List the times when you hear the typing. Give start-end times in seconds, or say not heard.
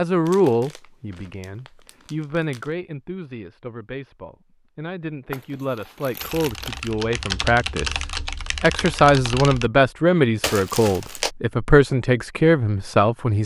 6.2-9.7.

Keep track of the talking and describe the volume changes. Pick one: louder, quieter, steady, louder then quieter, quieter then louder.
quieter then louder.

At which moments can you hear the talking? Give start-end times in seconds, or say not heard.
0.0-13.4.